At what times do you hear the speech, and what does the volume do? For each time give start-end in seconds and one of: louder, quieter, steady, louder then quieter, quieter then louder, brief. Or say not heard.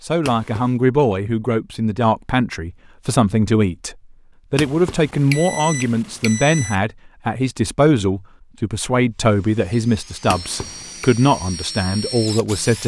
0.0-12.8 steady.